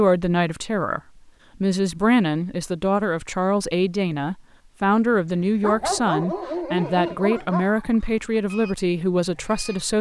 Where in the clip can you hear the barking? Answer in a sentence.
You can hear the barking from 5.6 to 7.7 s.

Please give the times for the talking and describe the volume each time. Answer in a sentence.
The talking can be heard briefly from 0.0 to 1.0 s; and from 1.6 to 9.9 s, at a steady volume.